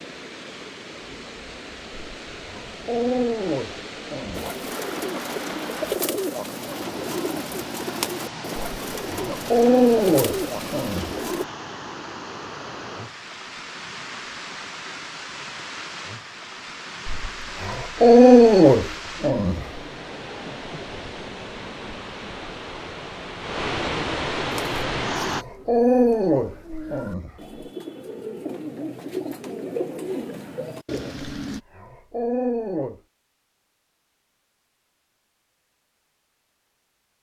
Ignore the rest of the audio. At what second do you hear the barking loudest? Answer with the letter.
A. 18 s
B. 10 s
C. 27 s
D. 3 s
A.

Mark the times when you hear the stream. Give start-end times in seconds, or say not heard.
0.0-25.4.